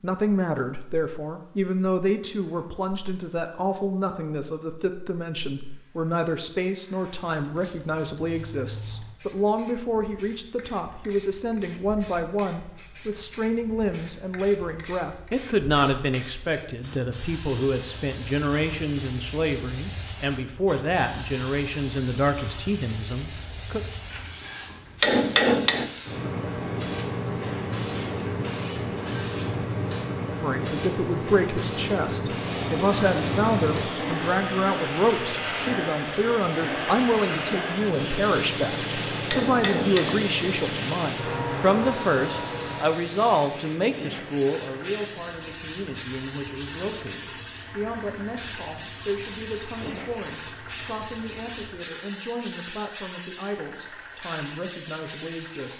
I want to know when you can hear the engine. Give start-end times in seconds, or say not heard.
32.3-51.9.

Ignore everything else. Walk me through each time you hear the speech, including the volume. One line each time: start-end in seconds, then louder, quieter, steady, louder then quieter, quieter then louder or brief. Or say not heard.
0.0-23.8 steady
30.4-55.7 quieter.